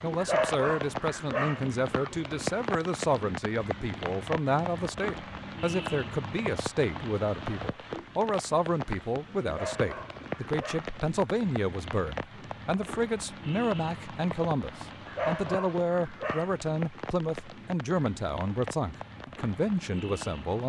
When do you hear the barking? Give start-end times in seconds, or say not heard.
0.1-2.1, 9.4-10.9, 15.1-16.6.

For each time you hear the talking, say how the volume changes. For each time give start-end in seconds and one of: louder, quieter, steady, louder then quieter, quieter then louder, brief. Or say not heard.
0.0-20.6 steady.